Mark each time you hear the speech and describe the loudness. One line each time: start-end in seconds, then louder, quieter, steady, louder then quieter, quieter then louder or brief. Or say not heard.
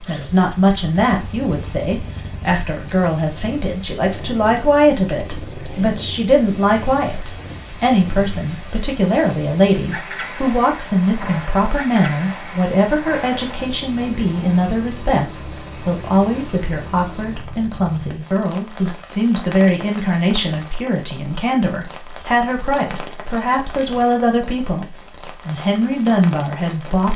0.0-27.1 steady.